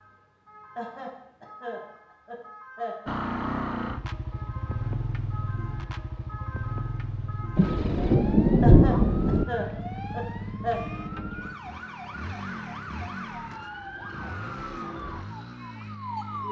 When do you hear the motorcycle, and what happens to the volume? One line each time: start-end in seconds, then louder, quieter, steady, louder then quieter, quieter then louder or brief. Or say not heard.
3.0-16.4 quieter.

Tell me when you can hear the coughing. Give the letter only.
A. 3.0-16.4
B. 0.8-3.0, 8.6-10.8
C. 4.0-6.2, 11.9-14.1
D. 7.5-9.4
B.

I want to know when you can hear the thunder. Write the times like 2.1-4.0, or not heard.
7.5-9.4.